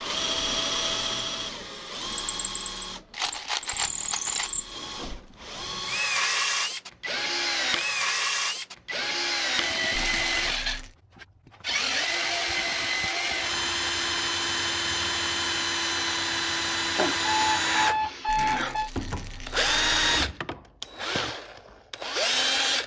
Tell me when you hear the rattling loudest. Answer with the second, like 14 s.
4 s.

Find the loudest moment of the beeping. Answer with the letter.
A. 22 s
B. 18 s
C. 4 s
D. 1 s
B.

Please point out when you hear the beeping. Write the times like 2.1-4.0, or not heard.
16.9-18.9.